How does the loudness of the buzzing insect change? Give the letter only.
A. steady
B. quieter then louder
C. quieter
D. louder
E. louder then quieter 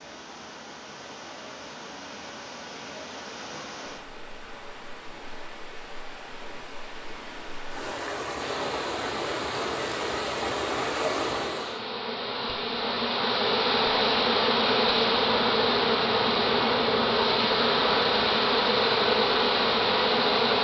D.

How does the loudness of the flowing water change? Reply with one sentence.
The loudness of the flowing water goes up.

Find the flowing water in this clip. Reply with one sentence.
You can hear the flowing water from 0.0 to 11.8 s.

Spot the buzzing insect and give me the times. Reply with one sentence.
You can hear the buzzing insect from 8.3 to 20.5 s.